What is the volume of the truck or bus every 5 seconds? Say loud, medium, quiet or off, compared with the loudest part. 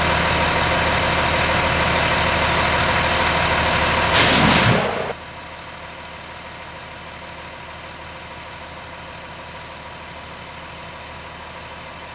loud, quiet, quiet.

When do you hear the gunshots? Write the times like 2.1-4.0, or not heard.
4.1-5.2.